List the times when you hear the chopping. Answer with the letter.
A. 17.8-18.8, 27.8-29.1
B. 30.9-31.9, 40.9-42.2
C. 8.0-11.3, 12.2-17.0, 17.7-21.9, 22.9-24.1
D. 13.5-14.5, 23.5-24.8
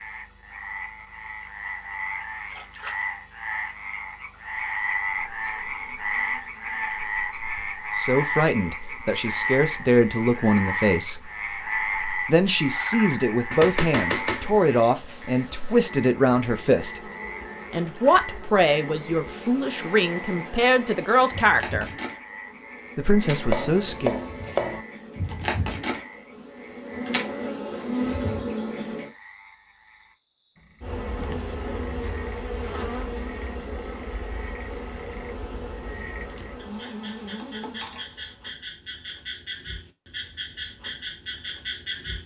D.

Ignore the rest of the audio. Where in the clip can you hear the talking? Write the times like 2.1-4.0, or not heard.
8.0-11.3, 12.2-17.0, 17.7-21.9, 22.9-24.1.